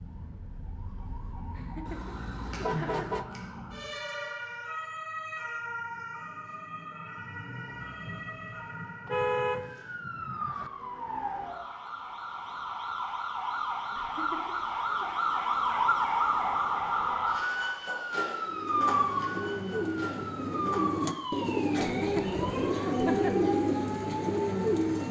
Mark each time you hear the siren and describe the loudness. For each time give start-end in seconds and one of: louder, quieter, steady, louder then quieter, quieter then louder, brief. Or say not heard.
0.0-25.0 louder then quieter.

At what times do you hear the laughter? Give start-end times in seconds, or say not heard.
1.5-3.2, 13.9-15.1, 21.9-23.5.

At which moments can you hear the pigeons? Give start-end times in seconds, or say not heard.
18.4-25.0.